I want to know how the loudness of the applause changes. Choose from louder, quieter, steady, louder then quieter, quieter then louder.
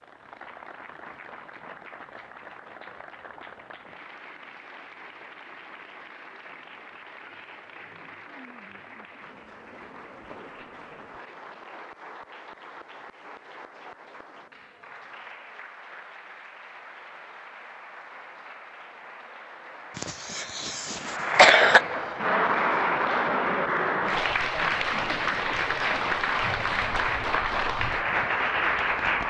louder.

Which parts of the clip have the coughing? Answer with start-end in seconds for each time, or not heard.
19.9-21.8.